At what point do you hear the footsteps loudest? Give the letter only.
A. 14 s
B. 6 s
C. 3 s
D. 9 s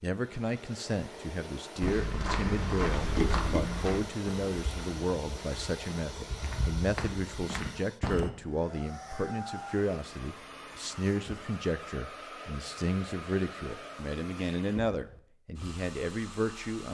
C.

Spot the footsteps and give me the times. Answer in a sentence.
The footsteps can be heard from 1.8 to 8.3 s.